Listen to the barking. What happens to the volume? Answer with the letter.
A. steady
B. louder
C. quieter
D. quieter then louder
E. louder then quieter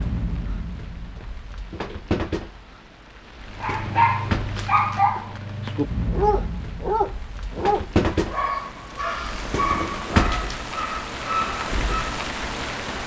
C.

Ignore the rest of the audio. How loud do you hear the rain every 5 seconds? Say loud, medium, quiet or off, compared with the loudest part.
medium, loud, loud.